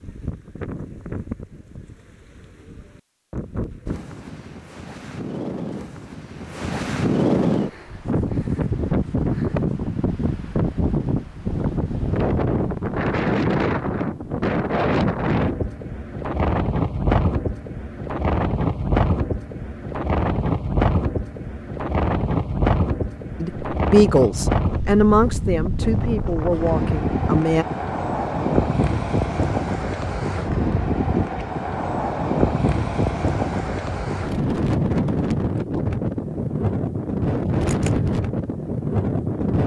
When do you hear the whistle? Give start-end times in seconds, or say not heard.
not heard.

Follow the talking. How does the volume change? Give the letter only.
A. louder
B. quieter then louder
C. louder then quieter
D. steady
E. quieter
E.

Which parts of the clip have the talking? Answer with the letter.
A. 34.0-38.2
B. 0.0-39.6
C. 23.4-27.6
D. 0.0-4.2
C.